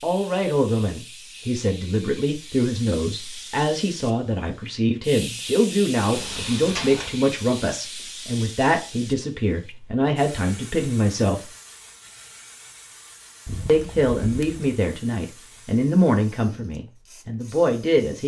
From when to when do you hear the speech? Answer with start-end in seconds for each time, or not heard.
0.0-11.4, 13.7-18.2.